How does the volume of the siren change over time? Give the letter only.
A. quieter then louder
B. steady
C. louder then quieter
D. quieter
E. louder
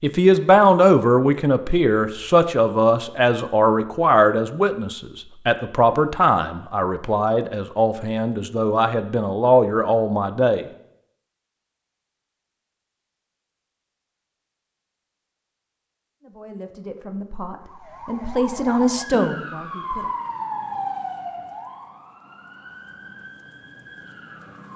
D.